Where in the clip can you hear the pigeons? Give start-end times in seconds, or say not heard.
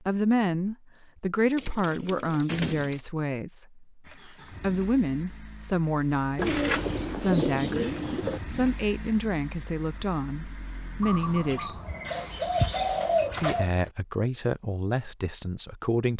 1.6-3.0, 6.3-8.4, 11.0-13.7.